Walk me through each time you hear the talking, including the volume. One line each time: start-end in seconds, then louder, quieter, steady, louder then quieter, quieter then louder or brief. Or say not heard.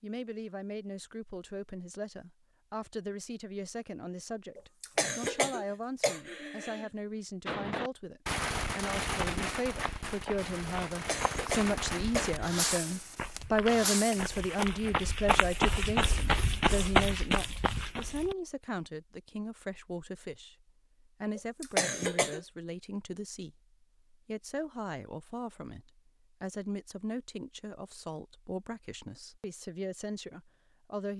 0.0-31.1 louder then quieter.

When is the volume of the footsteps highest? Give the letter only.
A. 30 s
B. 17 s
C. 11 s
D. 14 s
B.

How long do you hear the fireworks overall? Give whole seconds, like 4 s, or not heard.
7 s.